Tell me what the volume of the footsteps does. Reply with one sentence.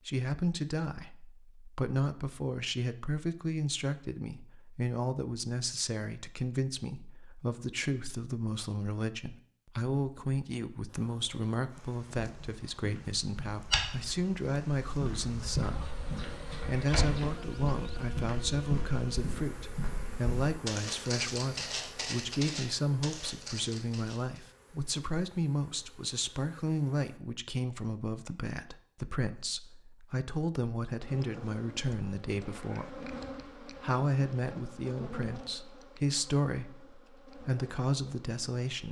The volume of the footsteps stays about the same.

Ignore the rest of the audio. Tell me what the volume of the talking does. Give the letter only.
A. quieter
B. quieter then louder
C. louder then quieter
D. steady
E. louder
D.